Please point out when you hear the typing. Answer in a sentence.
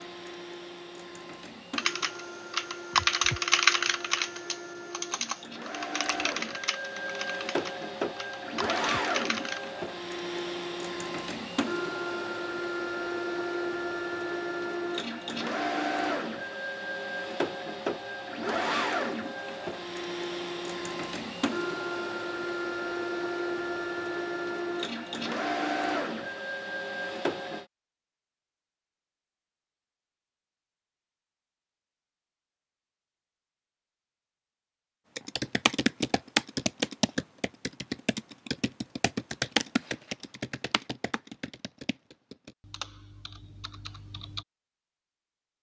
The typing can be heard from 1.8 to 9.7 s and from 35.1 to 44.5 s.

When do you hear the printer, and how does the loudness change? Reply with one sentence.
The printer can be heard from 0.0 to 27.6 s, getting louder.